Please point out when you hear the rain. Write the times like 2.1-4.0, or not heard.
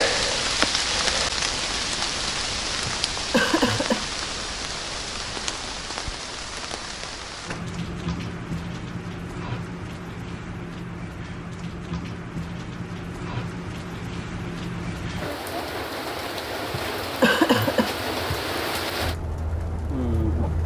0.0-20.6.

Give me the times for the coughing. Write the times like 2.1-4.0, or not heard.
2.9-4.0, 16.7-18.4.